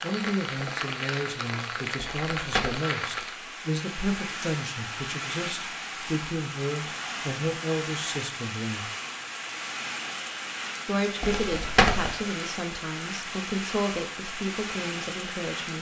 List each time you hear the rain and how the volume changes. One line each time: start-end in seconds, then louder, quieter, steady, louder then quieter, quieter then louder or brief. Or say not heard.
0.0-15.7 steady.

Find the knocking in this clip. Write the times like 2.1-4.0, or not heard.
not heard.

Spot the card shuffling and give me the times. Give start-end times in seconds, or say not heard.
1.9-2.8, 11.2-12.1.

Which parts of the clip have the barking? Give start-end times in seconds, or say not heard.
not heard.